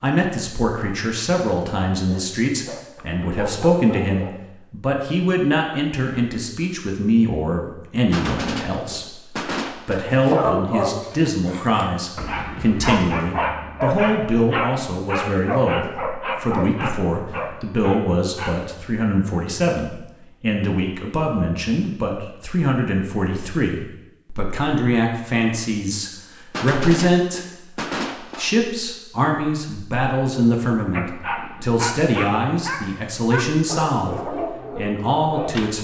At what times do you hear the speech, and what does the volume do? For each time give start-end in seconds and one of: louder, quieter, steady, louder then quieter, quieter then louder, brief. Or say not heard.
0.0-35.7 steady.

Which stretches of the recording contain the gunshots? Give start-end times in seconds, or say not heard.
8.1-10.1, 26.5-28.5.